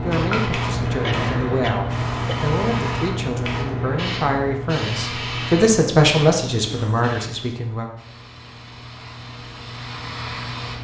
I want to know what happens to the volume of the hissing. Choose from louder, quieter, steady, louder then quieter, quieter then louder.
quieter.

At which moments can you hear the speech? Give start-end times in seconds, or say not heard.
0.0-7.9.